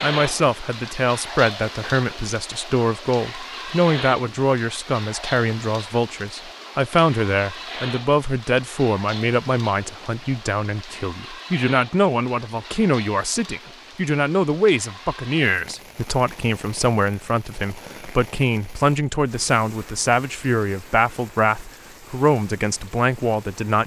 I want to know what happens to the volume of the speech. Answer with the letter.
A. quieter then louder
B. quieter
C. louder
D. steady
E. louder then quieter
D.